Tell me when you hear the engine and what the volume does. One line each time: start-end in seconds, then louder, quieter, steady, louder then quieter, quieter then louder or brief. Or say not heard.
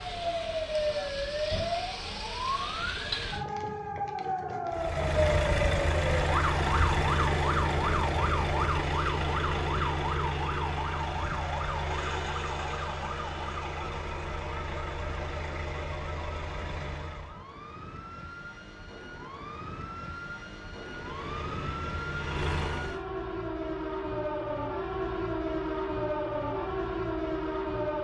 4.7-17.4 quieter
20.8-23.0 brief.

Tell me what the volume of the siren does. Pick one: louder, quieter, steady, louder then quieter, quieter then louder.
quieter then louder.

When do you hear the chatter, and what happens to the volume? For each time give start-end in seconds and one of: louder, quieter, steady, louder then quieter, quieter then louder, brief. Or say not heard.
not heard.